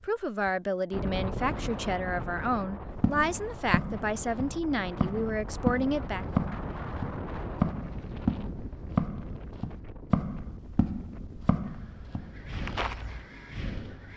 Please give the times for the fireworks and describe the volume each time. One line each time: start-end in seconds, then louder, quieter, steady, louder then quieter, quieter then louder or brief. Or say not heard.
not heard.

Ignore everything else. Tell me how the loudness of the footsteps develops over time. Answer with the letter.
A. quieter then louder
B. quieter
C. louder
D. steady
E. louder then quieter
E.